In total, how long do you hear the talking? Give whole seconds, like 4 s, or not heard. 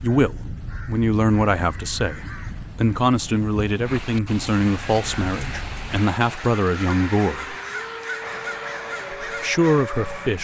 9 s.